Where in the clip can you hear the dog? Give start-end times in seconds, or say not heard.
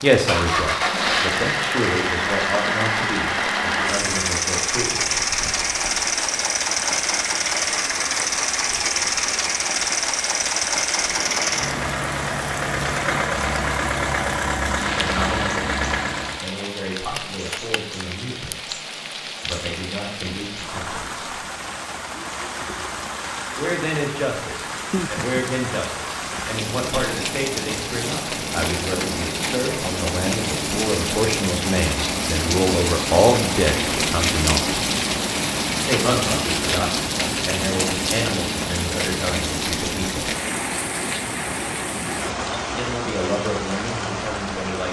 not heard.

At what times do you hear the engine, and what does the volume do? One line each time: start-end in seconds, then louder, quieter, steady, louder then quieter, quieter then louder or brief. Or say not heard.
0.1-16.5 steady.